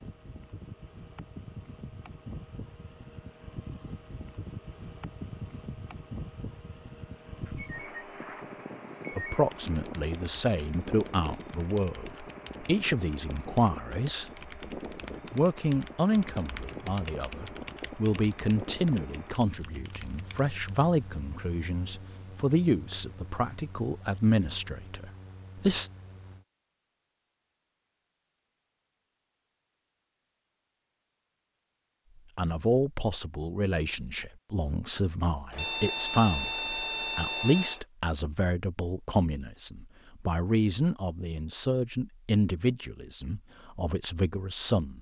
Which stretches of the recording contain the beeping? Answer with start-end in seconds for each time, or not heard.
7.4-9.4, 35.5-37.9.